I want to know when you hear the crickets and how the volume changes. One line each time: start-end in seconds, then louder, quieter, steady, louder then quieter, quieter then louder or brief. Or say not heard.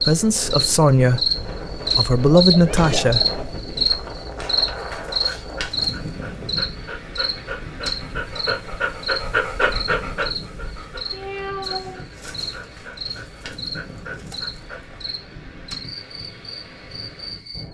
0.0-17.6 quieter.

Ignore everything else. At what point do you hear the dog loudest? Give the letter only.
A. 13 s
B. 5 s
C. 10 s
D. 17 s
C.